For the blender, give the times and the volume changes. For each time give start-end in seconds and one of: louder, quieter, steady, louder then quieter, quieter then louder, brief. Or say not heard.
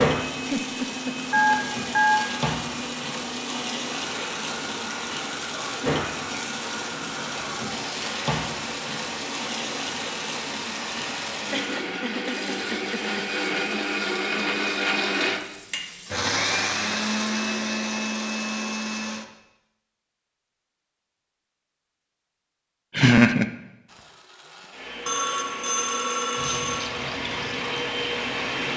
0.0-19.2 louder
23.9-28.7 louder.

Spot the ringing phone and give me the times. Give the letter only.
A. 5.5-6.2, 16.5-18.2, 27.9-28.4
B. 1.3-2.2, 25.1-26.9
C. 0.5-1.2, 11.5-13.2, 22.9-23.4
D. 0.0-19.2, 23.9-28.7
B.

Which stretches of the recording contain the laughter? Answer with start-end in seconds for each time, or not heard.
0.5-1.2, 11.5-13.2, 22.9-23.4.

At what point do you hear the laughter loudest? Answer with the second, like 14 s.
23 s.